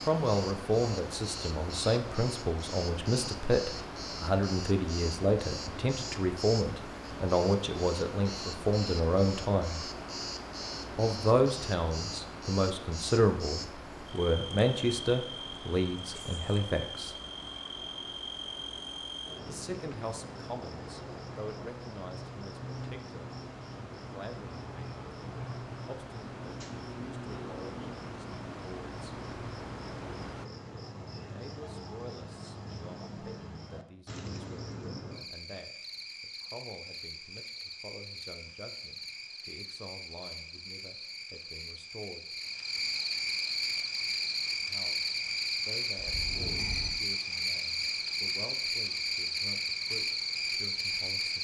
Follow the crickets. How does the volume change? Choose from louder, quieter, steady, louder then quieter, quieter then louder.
louder.